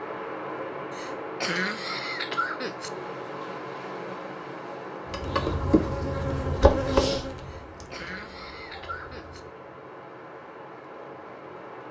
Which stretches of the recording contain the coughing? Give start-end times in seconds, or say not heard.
0.9-2.9, 7.5-9.4.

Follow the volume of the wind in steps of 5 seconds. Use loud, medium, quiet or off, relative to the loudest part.
loud, medium, medium.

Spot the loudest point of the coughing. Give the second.
2 s.